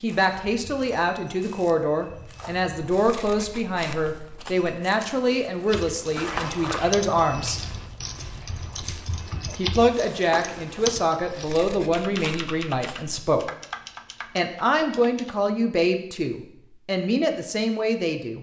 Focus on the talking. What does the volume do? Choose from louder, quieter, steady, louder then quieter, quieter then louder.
steady.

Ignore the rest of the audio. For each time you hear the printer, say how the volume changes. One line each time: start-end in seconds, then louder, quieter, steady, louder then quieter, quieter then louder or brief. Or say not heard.
not heard.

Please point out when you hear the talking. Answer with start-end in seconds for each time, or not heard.
0.0-7.6, 9.6-13.5, 14.3-18.3.